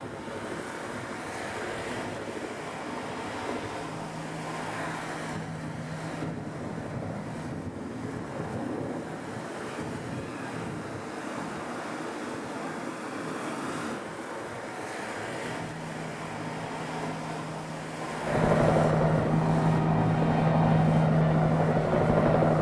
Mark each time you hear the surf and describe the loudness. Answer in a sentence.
The surf can be heard from 0.0 to 22.5 s, at a steady volume.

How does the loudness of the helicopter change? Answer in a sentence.
The volume of the helicopter goes up.